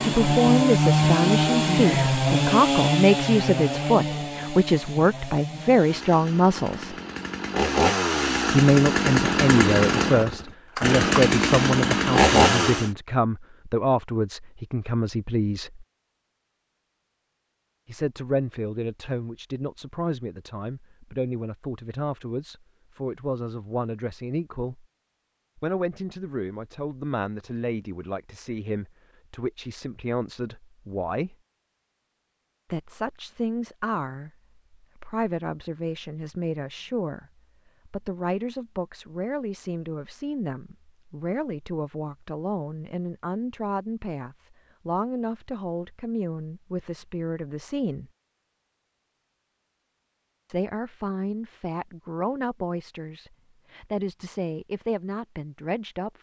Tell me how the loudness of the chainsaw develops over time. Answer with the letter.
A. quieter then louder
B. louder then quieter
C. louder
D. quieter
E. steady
A.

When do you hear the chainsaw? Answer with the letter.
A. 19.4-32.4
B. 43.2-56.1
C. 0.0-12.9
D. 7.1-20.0
C.